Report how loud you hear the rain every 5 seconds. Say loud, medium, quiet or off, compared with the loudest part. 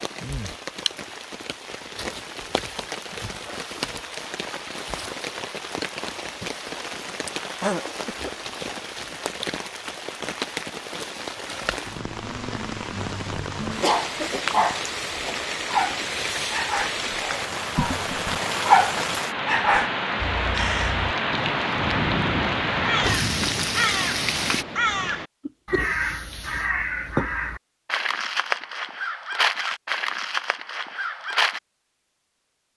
medium, medium, medium, loud, loud, off, off.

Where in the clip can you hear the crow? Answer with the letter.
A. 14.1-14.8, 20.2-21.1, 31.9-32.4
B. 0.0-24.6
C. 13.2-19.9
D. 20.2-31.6
D.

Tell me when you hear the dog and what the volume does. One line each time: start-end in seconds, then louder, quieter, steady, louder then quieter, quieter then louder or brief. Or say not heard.
13.2-19.9 quieter then louder.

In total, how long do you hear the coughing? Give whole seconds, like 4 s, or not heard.
2 s.